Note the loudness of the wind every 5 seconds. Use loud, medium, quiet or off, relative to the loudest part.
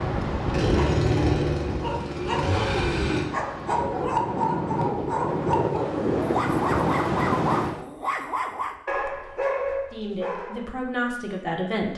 medium, loud, off.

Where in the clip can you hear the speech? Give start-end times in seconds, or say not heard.
9.9-11.9.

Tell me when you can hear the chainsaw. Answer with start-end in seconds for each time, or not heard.
0.5-3.3.